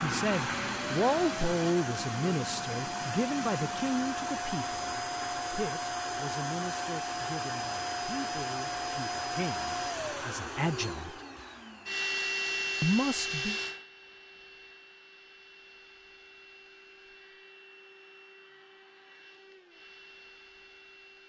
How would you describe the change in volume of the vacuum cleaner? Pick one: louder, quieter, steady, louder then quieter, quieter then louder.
quieter.